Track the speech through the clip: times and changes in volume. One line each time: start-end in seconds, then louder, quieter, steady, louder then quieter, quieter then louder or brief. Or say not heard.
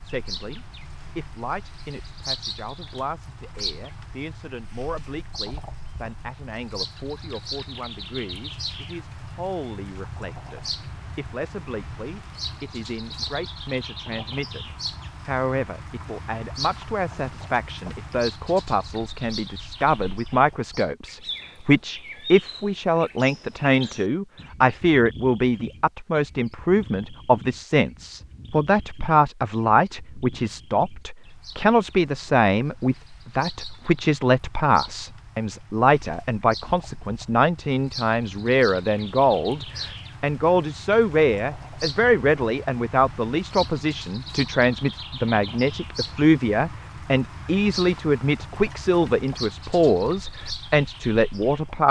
0.0-51.8 louder.